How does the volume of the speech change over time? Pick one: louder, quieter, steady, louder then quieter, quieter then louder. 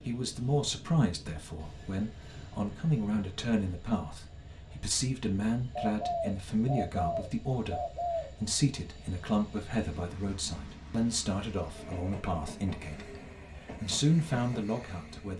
steady.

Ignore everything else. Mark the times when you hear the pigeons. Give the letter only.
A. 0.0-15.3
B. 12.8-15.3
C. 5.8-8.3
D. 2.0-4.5
C.